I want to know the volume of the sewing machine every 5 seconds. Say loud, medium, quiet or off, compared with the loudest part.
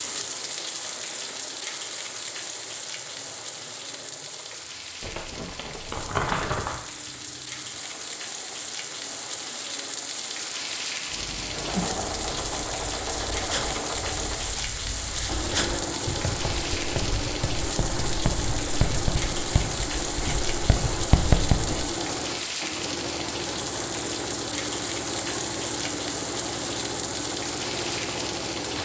quiet, quiet, loud, loud, loud, loud.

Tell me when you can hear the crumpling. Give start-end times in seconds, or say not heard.
5.0-6.8.